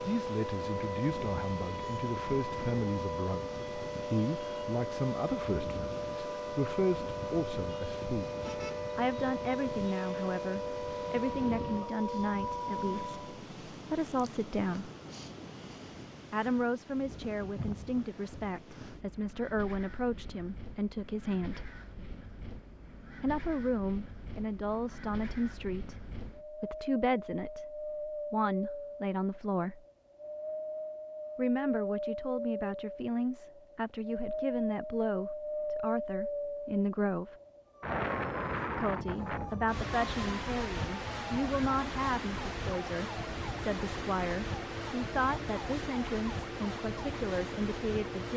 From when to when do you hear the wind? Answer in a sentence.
You can hear the wind from 0.0 to 48.3 s.